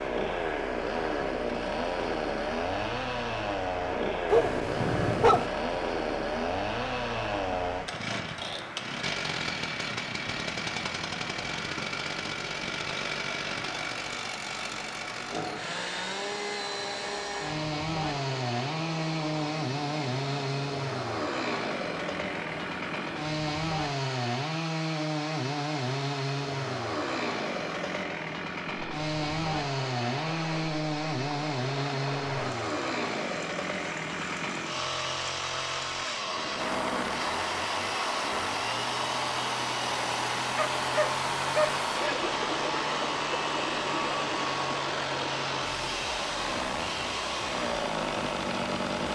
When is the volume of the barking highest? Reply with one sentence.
The loudest moment of the barking is at 5 seconds.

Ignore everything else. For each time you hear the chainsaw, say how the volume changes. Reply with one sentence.
You can hear the chainsaw from 0.0 to 49.0 s, at a steady volume.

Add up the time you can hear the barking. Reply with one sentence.
The barking can be heard for 3 seconds in total.